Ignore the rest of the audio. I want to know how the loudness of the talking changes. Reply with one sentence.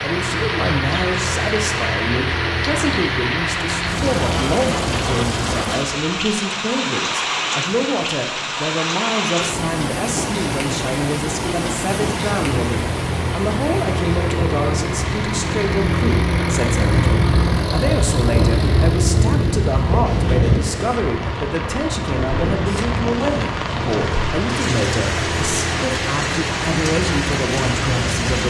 The loudness of the talking stays about the same.